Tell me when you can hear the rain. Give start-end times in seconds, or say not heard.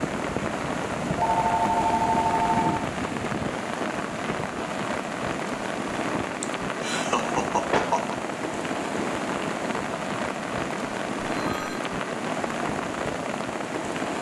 0.0-14.1.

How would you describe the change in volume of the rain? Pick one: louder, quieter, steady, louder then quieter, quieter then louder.
steady.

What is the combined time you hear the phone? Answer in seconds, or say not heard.
2 s.